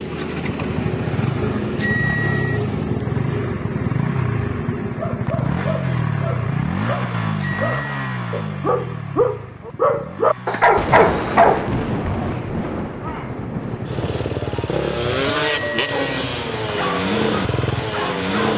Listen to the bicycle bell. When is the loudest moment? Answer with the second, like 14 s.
2 s.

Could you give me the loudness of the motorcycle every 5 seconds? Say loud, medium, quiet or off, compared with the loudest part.
loud, loud, medium, loud.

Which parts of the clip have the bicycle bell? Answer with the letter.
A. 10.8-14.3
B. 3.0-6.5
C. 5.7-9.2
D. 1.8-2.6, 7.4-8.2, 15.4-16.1
D.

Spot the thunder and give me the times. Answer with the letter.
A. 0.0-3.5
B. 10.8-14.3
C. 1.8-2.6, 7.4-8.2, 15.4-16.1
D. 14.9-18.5
B.